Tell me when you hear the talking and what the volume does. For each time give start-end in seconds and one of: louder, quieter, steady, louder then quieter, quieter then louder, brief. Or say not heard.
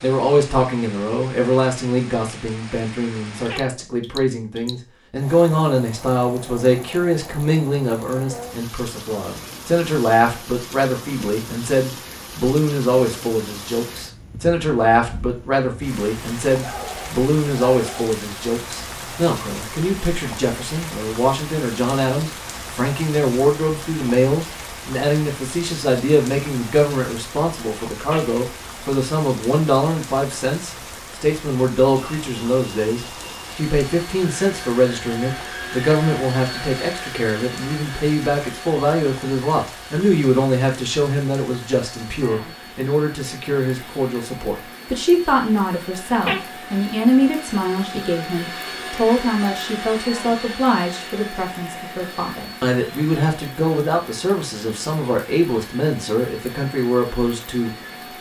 0.0-58.1 steady.